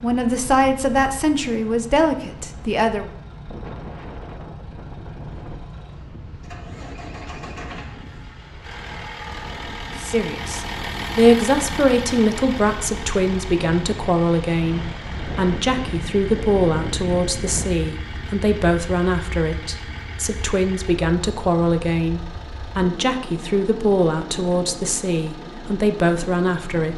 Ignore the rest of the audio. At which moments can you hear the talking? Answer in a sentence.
You can hear the talking from 0.0 to 3.1 s and from 10.0 to 26.9 s.